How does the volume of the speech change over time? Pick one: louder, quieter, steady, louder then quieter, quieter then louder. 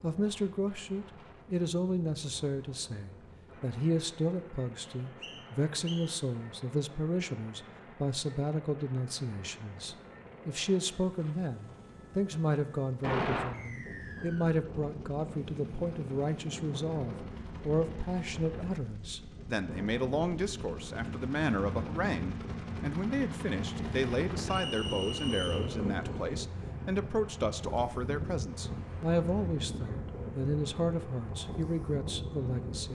steady.